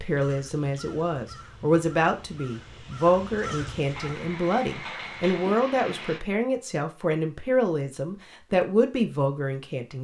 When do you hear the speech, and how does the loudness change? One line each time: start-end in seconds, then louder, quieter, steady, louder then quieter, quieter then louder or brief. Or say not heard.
0.0-9.9 steady.